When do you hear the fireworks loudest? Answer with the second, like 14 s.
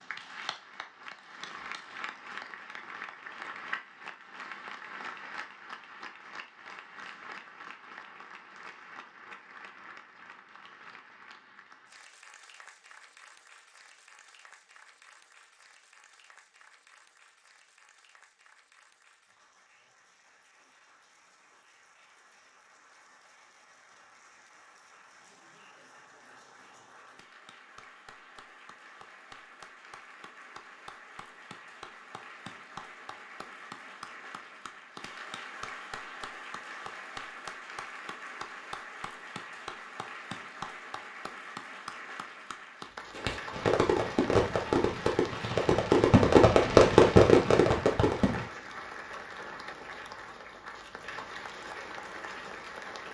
47 s.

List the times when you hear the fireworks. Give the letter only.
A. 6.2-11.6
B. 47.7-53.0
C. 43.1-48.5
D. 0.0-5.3
C.